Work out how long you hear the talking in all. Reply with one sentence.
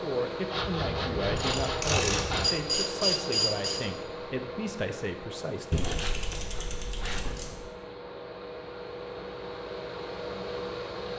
The talking can be heard for 6 seconds in total.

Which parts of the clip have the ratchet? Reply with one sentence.
The ratchet can be heard from 1.2 to 3.8 s and from 5.7 to 7.7 s.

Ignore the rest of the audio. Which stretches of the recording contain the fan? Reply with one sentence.
You can hear the fan from 0.0 to 11.1 s.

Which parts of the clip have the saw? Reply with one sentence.
You can hear the saw from 0.5 to 2.5 s and from 5.8 to 7.4 s.